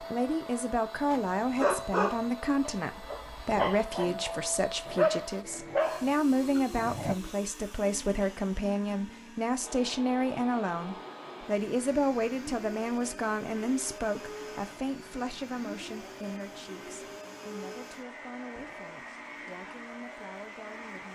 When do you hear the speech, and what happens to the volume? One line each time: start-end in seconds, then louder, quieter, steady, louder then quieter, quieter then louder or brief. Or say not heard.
0.0-21.1 quieter.